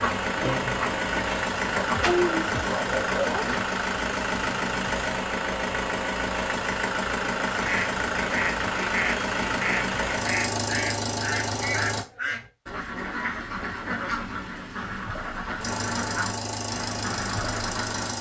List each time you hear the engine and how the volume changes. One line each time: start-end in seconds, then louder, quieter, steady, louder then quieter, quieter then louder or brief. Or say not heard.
0.0-12.1 steady
15.6-18.1 brief.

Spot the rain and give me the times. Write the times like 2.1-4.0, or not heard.
not heard.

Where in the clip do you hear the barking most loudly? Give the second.
2 s.